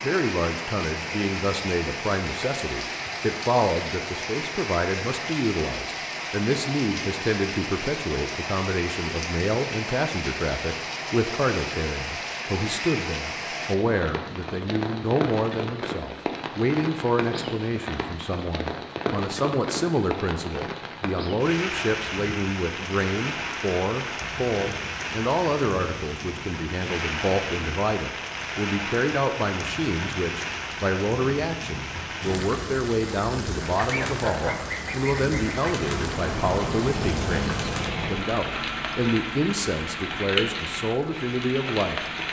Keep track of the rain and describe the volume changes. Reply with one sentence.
The volume of the rain stays about the same.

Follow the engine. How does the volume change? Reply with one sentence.
The volume of the engine goes down.